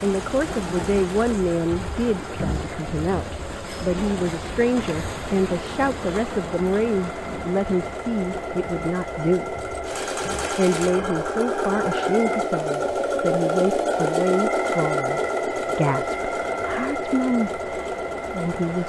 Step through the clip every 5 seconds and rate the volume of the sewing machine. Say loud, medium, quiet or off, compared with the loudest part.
quiet, medium, loud, loud.